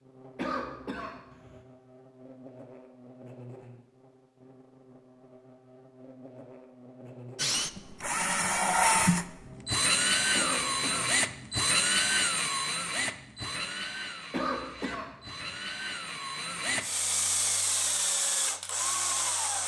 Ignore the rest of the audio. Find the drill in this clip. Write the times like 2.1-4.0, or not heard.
7.3-19.6.